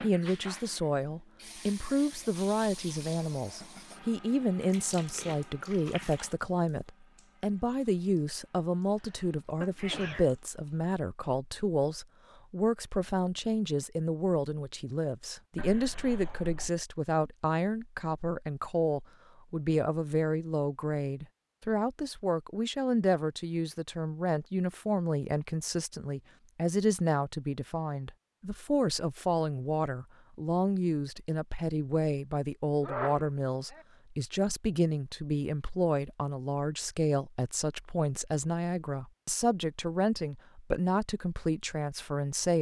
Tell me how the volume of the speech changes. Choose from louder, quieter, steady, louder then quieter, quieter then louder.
steady.